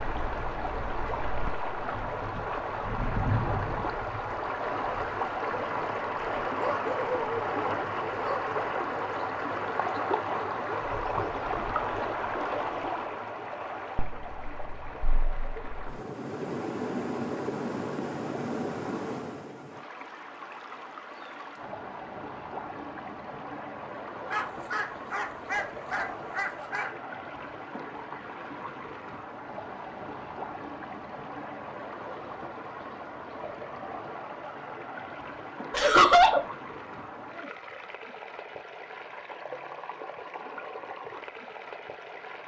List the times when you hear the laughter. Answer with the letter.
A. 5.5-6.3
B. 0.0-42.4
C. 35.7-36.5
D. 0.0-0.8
C.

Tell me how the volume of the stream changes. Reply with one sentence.
The volume of the stream goes down.